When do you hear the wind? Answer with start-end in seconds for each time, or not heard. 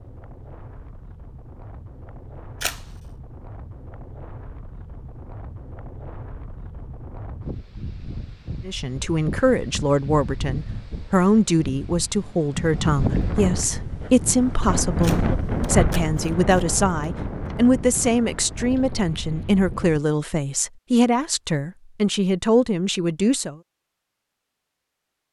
0.0-20.0.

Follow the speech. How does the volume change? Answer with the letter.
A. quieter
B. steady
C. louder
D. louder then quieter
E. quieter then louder
B.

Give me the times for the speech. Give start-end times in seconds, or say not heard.
8.7-23.6.